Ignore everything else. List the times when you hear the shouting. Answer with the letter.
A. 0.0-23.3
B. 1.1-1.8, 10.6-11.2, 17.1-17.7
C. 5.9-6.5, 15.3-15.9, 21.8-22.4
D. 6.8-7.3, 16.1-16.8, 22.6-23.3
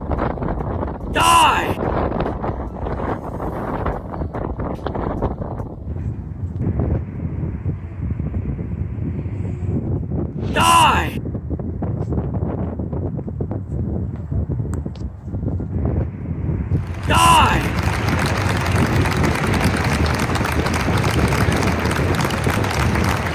B.